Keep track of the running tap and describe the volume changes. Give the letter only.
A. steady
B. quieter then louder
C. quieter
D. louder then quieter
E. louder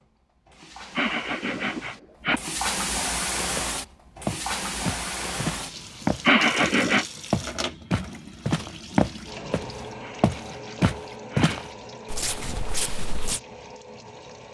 C.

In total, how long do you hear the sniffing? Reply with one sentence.
The sniffing can be heard for 4 seconds in total.